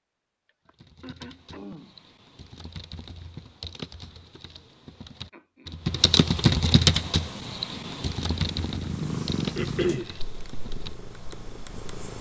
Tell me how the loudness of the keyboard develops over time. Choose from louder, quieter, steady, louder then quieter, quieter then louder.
louder then quieter.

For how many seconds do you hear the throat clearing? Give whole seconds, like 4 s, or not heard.
3 s.